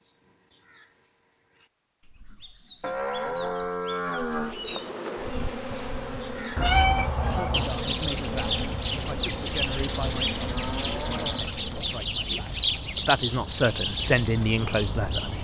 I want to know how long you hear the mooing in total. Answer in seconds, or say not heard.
4 s.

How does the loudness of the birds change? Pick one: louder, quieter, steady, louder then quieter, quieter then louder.
louder.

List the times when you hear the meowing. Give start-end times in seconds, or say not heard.
6.5-7.8.